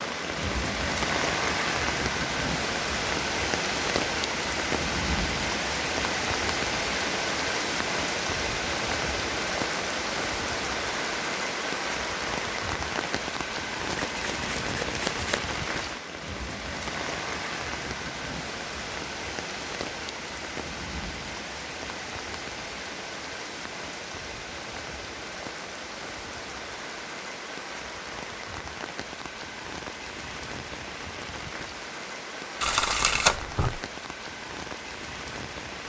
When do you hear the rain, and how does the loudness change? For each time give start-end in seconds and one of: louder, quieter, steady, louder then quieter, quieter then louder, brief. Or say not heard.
0.0-35.8 quieter.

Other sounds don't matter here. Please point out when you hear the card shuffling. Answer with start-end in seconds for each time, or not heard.
13.9-15.4, 32.6-33.8.